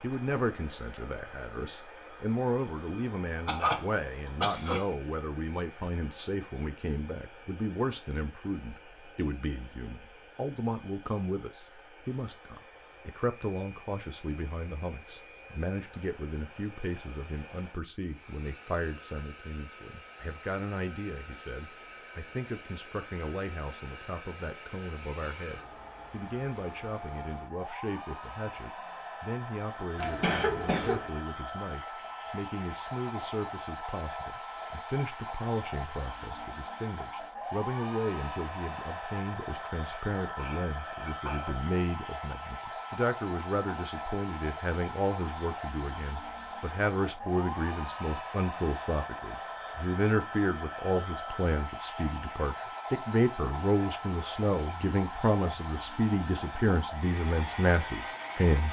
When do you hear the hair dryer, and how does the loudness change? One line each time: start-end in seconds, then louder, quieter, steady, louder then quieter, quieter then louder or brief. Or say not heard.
0.0-58.6 louder.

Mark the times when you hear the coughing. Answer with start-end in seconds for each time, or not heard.
3.5-4.9, 29.9-31.1, 39.9-41.5.